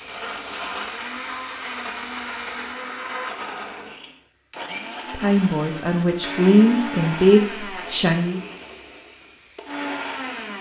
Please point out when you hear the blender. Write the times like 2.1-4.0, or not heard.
0.0-10.5.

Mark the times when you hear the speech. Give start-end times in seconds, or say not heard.
5.1-8.4.